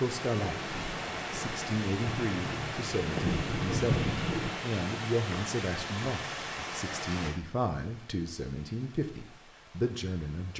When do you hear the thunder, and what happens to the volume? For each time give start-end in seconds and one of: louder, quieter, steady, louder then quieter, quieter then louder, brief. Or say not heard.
0.4-4.5 louder.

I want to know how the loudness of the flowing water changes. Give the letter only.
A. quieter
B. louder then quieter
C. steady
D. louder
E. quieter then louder
A.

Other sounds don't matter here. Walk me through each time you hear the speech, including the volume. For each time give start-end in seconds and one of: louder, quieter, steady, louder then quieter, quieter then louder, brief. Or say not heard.
0.0-10.5 steady.